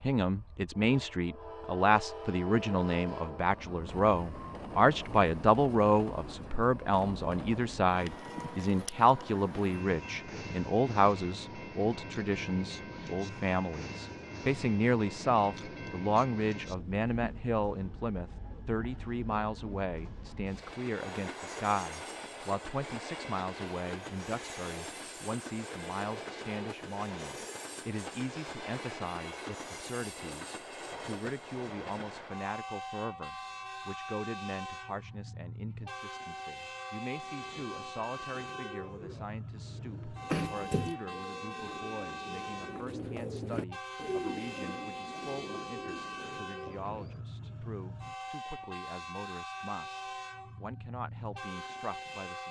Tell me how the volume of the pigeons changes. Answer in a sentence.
The volume of the pigeons goes up, then down.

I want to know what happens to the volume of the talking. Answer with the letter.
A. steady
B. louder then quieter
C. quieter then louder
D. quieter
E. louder
D.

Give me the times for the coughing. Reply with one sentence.
You can hear the coughing from 40.2 to 41.0 s.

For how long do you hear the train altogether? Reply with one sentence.
You can hear the train for 52 seconds altogether.